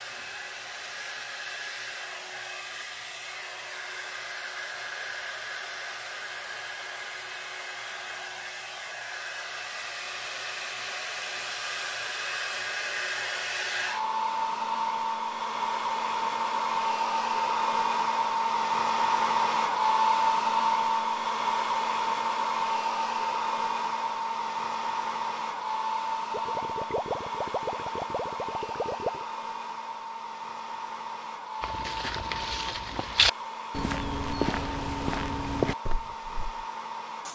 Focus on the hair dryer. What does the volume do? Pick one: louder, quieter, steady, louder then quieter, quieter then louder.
louder then quieter.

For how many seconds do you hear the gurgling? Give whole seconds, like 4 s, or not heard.
3 s.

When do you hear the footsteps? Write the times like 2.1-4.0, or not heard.
31.6-36.6.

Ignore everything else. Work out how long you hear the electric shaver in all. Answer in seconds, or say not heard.
not heard.